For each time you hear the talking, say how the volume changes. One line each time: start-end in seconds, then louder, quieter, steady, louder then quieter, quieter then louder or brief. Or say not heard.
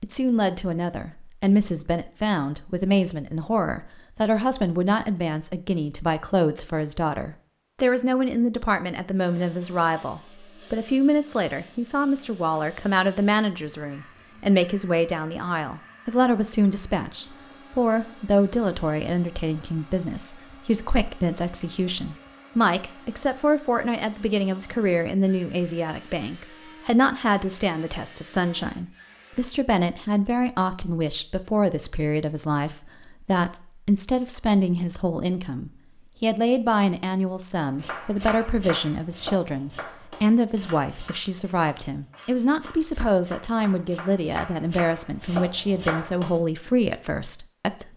0.0-47.9 steady.